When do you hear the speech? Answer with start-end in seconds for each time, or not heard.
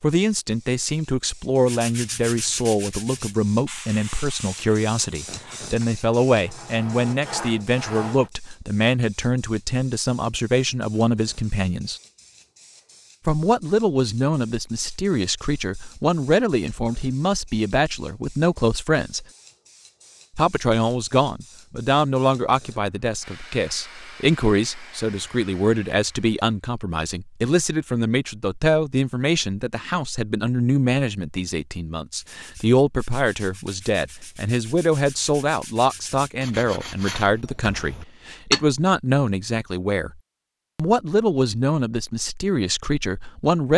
0.0-12.0, 13.2-19.2, 20.4-40.1, 40.8-43.7.